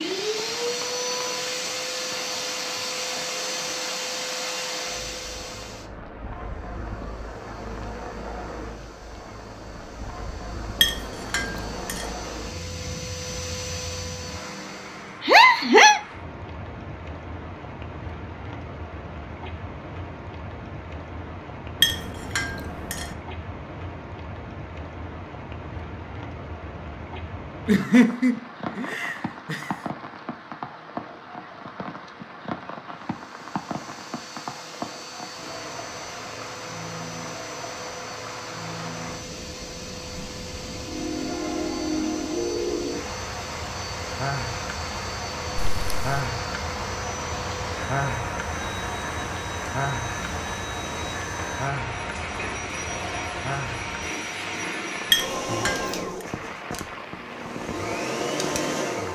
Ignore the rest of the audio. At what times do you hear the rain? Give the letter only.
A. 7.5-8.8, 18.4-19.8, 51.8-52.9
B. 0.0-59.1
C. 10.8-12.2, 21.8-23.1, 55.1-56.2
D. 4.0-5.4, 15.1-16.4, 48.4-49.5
B.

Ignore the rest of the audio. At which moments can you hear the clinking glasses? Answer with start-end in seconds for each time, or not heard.
10.8-12.2, 21.8-23.1, 55.1-56.2.